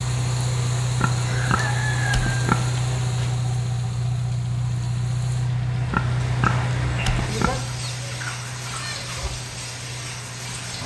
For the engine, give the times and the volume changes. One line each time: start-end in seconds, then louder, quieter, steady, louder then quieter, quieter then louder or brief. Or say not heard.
0.0-10.8 quieter.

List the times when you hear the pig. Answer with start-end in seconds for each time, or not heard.
0.9-3.4, 5.9-7.5.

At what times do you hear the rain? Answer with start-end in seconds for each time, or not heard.
0.0-10.8.